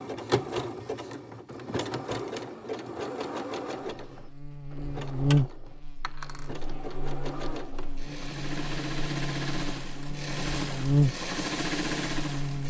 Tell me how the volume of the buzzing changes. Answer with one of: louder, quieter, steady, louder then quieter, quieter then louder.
quieter then louder.